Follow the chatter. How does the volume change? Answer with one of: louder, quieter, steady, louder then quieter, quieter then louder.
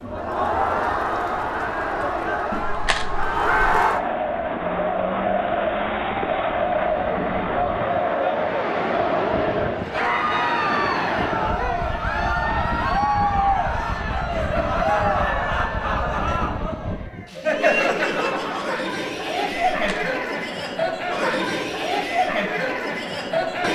steady.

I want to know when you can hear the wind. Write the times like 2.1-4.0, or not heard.
0.0-17.3.